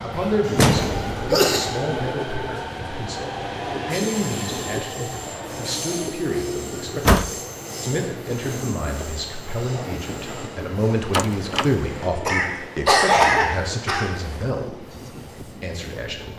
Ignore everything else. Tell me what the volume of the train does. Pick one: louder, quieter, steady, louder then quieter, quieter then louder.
quieter.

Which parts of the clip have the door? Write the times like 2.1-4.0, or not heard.
0.6-1.1, 6.8-7.3, 11.1-11.7.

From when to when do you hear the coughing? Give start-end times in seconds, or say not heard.
0.5-1.6, 12.2-14.1.